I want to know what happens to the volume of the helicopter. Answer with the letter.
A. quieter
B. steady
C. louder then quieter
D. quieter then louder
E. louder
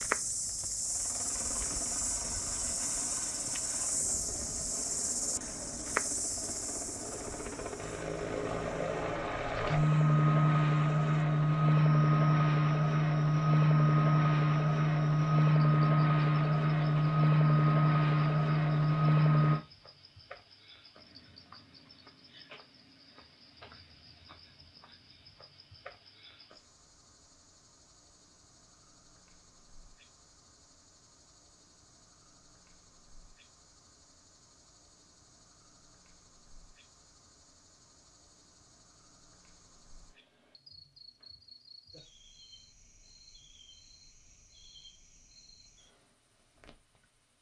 E.